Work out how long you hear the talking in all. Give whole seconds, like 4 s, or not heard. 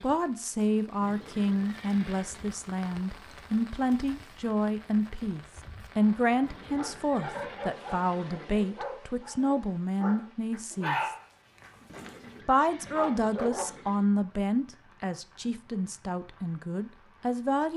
16 s.